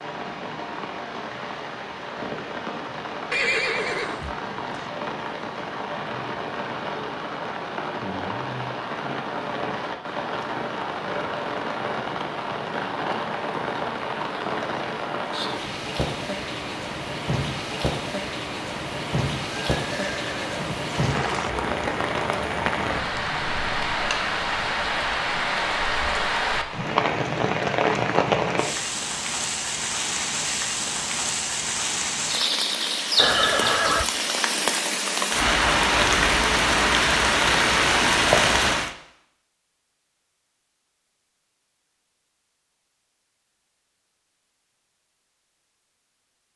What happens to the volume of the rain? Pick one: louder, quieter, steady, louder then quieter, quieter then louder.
louder.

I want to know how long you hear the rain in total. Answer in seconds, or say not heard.
39 s.